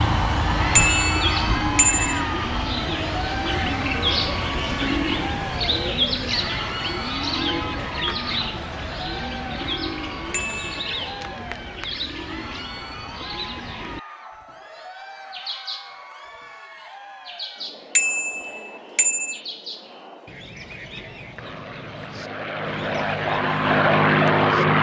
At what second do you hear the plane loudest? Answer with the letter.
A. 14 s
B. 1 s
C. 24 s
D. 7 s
C.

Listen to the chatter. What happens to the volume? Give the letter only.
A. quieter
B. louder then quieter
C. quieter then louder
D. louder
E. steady
A.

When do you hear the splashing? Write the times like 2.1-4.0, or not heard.
not heard.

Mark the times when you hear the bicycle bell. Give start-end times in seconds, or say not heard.
0.8-2.2, 10.3-10.8, 17.9-19.4.